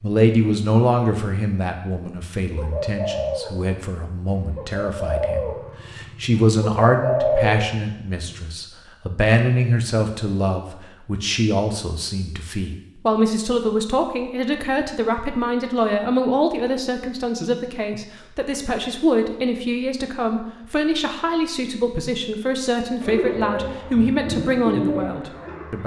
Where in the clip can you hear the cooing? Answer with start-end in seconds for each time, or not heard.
2.5-8.4, 23.0-25.8.